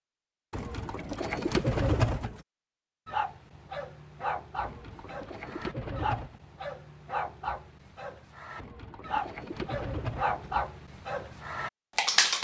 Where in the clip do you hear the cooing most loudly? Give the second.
2 s.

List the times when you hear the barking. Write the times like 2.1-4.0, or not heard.
3.0-12.4.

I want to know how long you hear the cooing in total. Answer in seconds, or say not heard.
6 s.